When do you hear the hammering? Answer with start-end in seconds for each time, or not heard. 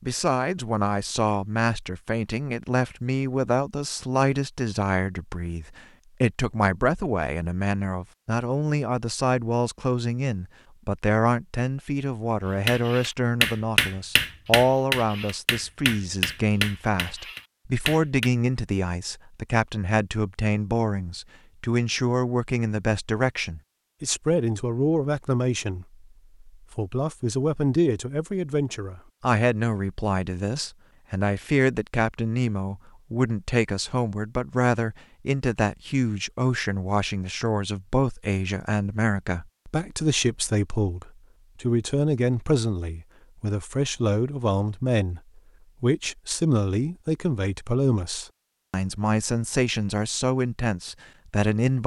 12.7-18.3.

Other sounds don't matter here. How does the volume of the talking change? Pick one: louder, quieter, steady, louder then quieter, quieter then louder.
steady.